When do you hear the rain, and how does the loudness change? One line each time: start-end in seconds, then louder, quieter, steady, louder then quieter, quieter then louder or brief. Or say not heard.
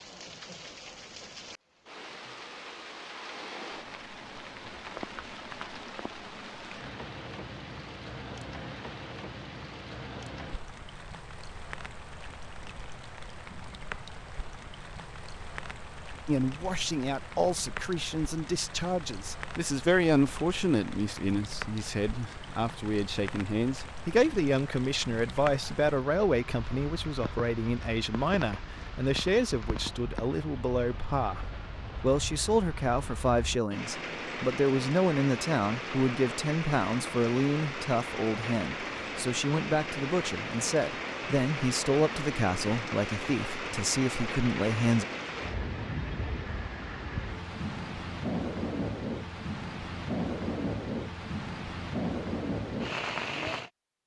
0.0-53.7 louder.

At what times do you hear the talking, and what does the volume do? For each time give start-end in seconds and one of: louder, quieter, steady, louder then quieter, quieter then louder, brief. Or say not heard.
16.2-45.0 steady.